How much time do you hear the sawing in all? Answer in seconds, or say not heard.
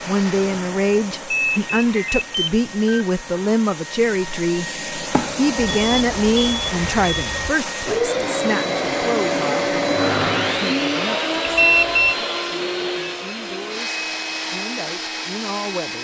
not heard.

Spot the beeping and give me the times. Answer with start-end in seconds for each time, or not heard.
1.3-3.0, 5.6-7.5, 11.4-12.2.